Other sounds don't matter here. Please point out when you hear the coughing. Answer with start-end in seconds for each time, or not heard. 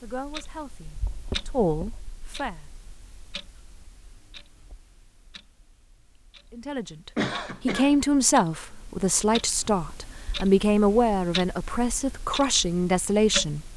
7.2-8.0.